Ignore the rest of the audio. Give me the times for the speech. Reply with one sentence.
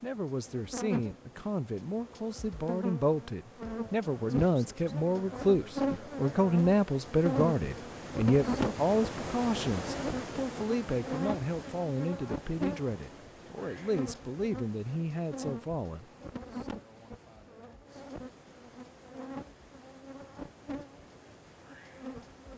The speech can be heard from 0.0 to 16.1 s.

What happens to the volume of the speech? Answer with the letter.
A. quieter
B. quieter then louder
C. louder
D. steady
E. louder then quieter
E.